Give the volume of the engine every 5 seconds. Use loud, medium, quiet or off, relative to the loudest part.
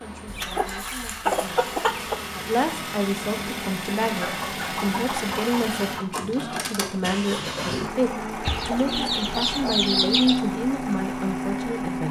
medium, loud, loud.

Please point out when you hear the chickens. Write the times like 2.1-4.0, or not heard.
0.2-2.2, 4.2-6.2, 8.4-10.4.